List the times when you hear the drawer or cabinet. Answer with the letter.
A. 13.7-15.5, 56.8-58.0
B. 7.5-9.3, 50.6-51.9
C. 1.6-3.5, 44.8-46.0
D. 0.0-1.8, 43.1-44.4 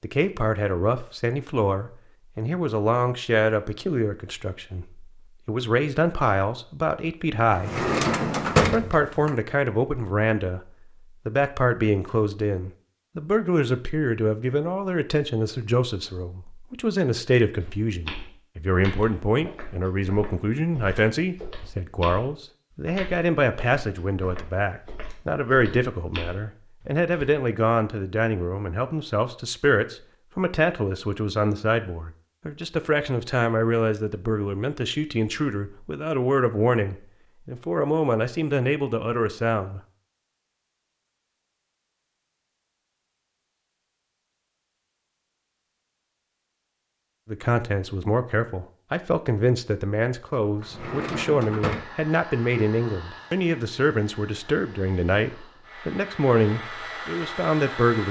B.